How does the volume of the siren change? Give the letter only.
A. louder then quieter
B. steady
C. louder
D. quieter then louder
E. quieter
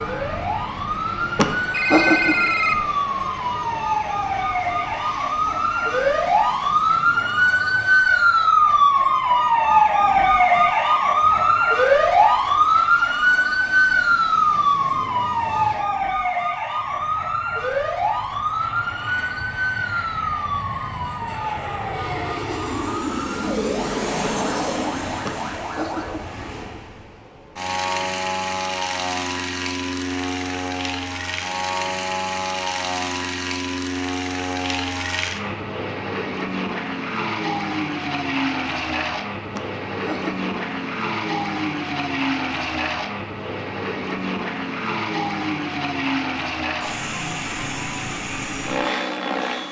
A.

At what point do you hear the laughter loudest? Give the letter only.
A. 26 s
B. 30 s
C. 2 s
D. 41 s
C.